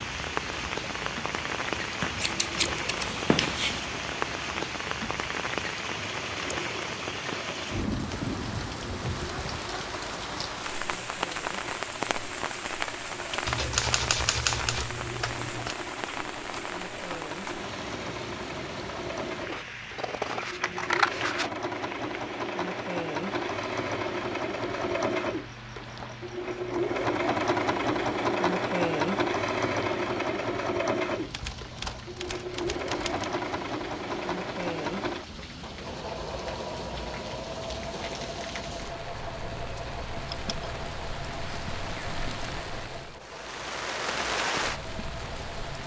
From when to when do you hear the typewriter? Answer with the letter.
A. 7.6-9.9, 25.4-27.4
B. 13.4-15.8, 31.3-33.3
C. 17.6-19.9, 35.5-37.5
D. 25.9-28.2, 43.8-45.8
B.